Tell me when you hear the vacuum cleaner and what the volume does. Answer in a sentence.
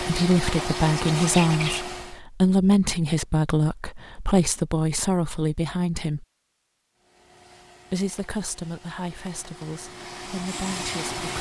The vacuum cleaner can be heard briefly from 0.0 to 2.2 s; and from 7.0 to 11.3 s, getting louder.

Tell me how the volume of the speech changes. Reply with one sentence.
The volume of the speech goes down.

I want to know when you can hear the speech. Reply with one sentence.
You can hear the speech from 0.0 to 6.2 s and from 7.9 to 11.3 s.